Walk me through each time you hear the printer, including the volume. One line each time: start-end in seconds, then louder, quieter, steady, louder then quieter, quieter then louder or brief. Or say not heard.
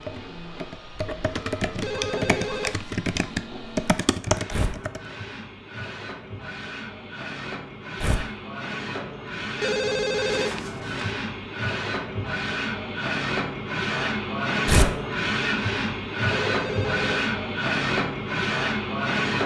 0.0-19.4 louder.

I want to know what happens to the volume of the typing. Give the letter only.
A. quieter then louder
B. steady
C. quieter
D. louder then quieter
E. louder
E.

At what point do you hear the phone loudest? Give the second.
10 s.